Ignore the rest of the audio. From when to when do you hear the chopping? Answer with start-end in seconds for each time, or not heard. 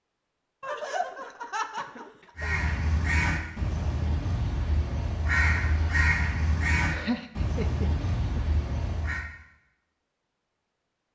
not heard.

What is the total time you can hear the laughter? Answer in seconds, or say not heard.
4 s.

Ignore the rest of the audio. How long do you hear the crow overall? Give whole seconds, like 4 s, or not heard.
7 s.